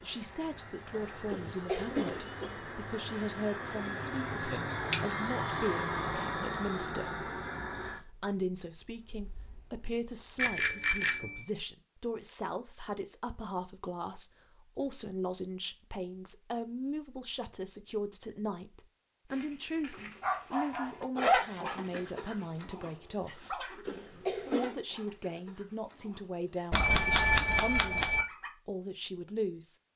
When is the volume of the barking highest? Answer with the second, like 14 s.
21 s.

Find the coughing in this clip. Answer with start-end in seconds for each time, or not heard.
1.2-2.6, 23.9-24.8.